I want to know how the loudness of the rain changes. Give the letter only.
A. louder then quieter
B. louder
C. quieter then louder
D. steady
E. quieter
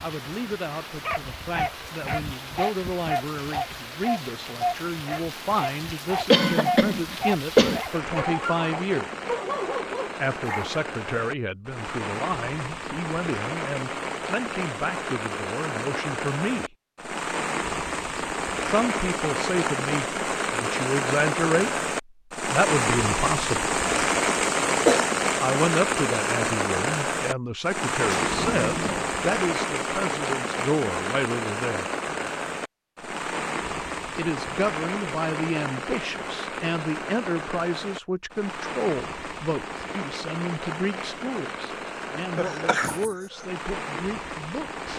A.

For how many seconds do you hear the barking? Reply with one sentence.
You can hear the barking for 10 seconds altogether.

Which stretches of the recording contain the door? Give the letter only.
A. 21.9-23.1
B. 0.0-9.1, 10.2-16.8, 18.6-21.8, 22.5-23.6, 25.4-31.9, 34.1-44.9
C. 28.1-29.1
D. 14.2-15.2
C.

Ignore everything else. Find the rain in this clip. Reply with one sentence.
You can hear the rain from 0.0 to 44.9 s.